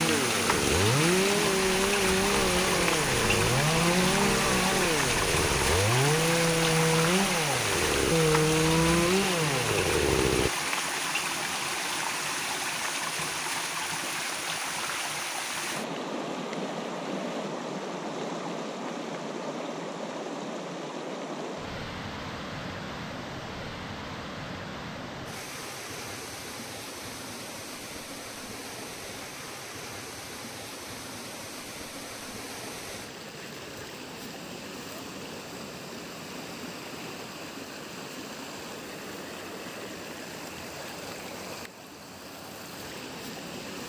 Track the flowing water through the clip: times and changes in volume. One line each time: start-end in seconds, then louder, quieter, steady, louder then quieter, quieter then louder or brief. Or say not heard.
0.0-43.8 quieter.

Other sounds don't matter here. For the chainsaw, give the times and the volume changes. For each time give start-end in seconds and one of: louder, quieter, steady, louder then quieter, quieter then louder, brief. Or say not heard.
0.0-10.5 steady.